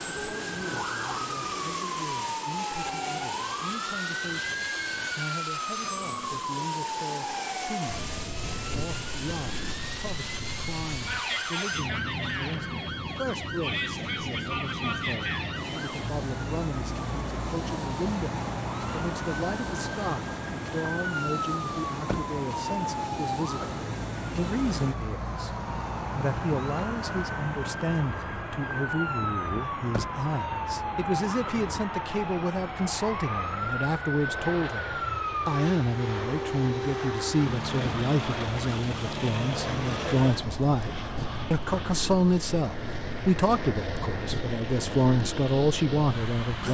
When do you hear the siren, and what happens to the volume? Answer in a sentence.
The siren can be heard from 0.0 to 46.6 s, at a steady volume.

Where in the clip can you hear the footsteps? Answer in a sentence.
You can't hear the footsteps here.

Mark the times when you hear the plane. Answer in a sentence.
You can hear the plane from 0.0 to 46.6 s.